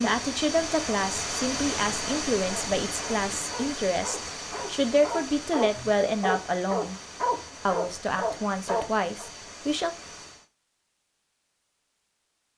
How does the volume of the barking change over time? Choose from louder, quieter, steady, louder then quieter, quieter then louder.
louder.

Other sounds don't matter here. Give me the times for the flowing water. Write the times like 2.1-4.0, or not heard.
0.0-10.4.